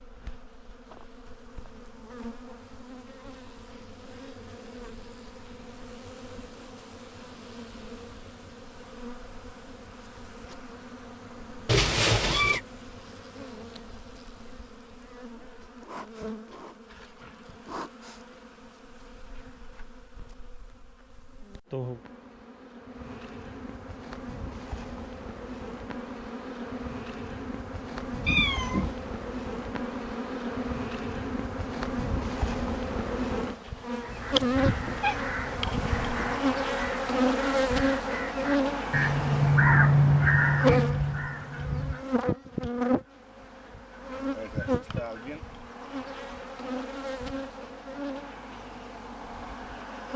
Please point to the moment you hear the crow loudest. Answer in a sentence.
The volume of the crow peaks at 40 seconds.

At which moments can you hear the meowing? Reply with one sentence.
You can hear the meowing from 11.7 to 12.6 s, from 28.2 to 28.9 s and from 34.0 to 36.4 s.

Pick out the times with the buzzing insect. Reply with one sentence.
You can hear the buzzing insect from 0.0 to 50.1 s.